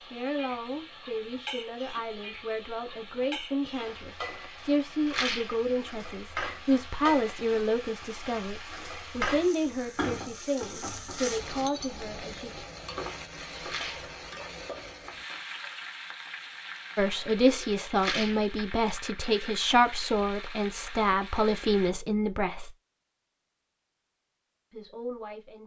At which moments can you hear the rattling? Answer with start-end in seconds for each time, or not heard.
5.0-5.5, 13.6-14.1, 17.9-18.4.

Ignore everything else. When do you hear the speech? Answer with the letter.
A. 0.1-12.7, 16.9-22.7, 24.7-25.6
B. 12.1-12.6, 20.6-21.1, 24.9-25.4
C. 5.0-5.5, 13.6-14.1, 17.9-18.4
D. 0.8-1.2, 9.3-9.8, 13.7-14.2
A.